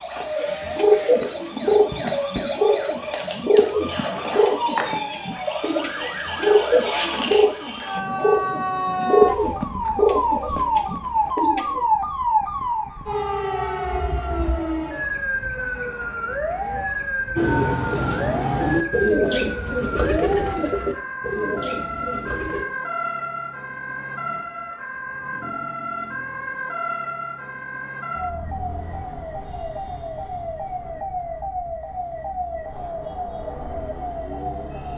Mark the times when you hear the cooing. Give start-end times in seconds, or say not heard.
0.4-11.8, 17.4-22.6.